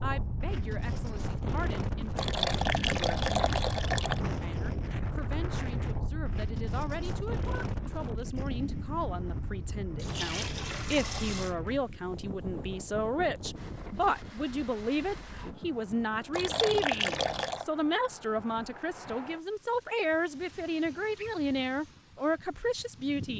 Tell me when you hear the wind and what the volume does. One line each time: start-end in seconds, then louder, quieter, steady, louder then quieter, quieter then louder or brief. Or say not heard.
0.0-23.3 quieter.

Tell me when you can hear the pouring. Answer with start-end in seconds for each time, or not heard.
2.1-4.2, 9.9-11.6, 16.3-17.6.